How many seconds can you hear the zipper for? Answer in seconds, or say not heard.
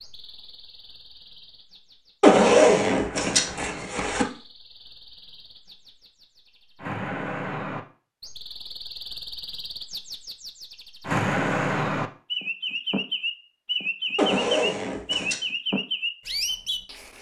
3 s.